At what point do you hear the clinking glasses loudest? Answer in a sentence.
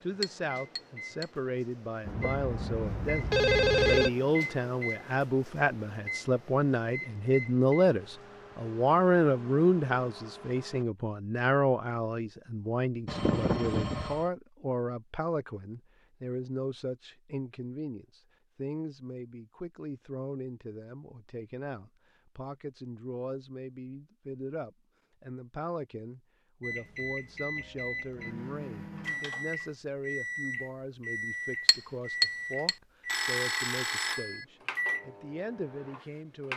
The loudest moment of the clinking glasses is at 32 seconds.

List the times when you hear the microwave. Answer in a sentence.
You can hear the microwave from 0.0 to 10.8 s and from 26.6 to 36.5 s.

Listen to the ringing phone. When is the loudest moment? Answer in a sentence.
The volume of the ringing phone peaks at 4 seconds.